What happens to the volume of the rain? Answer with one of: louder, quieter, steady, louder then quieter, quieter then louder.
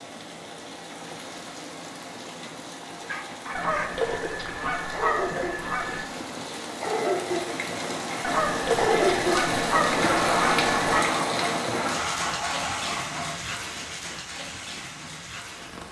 louder then quieter.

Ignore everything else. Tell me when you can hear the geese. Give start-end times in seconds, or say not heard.
3.5-6.1, 8.2-11.1.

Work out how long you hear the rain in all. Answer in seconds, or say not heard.
16 s.